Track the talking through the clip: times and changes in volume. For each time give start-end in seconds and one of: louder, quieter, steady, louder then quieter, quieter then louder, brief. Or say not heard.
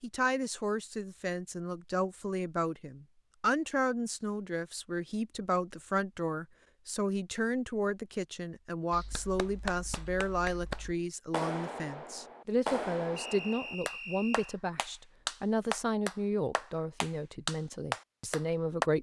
0.0-18.9 steady.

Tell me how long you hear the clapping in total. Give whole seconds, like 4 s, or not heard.
10 s.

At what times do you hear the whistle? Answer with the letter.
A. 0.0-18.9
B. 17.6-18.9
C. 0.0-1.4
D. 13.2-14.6
D.